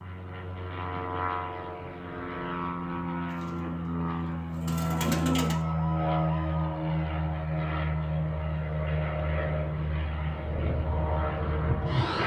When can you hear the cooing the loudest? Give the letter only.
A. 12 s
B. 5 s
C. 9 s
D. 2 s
B.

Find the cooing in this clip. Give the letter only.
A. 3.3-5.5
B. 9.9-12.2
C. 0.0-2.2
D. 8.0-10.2
A.